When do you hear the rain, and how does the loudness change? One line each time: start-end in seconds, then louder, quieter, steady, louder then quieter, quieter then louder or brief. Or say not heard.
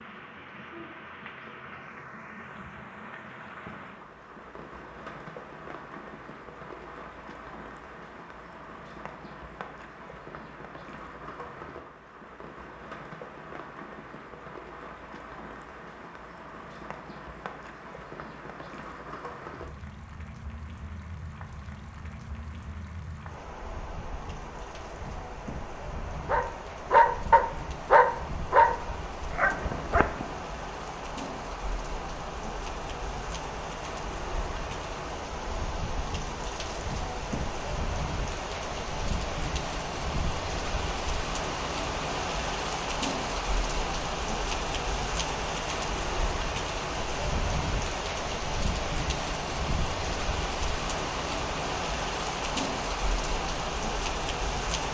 0.0-54.8 louder.